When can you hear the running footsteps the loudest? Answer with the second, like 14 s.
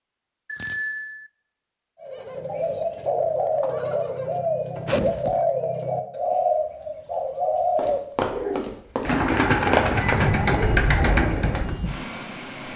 10 s.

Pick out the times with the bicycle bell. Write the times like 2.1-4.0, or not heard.
0.5-1.3, 4.8-5.5, 9.9-10.8.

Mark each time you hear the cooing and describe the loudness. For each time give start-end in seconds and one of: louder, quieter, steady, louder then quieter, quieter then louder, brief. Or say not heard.
2.0-11.8 steady.